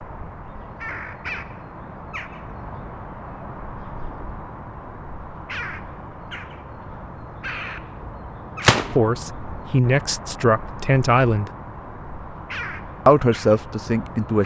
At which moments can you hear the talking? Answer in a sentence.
The talking can be heard from 8.9 to 11.5 s and from 13.1 to 14.4 s.